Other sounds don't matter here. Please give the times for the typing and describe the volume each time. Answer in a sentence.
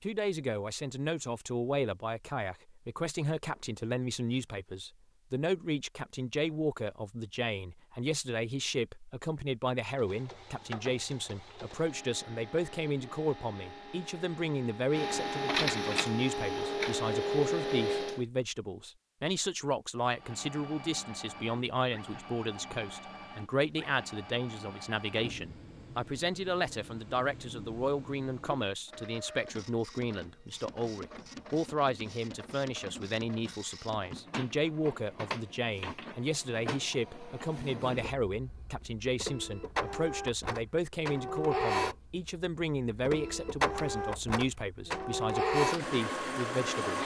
The typing can't be heard in this clip.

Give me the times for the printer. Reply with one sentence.
You can hear the printer from 9.9 to 18.2 s and from 20.1 to 47.0 s.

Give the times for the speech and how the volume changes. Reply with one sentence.
The speech can be heard from 0.0 to 47.0 s, at a steady volume.